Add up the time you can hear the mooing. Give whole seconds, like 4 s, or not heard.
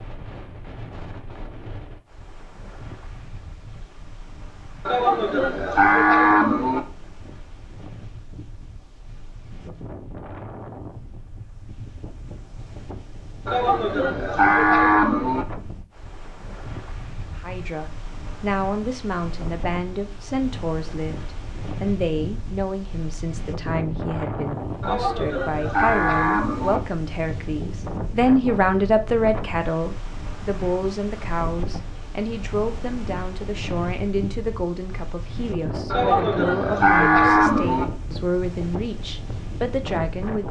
8 s.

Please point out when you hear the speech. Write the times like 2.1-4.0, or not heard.
17.4-40.4.